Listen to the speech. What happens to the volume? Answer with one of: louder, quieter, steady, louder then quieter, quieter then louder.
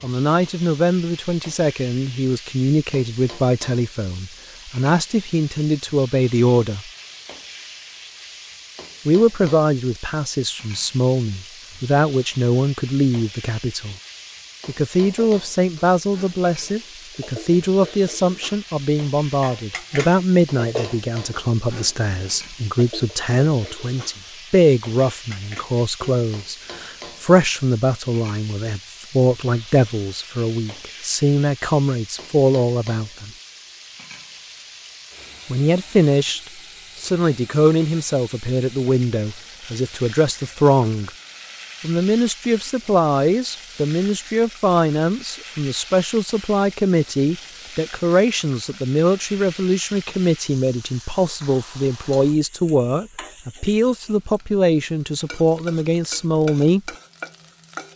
steady.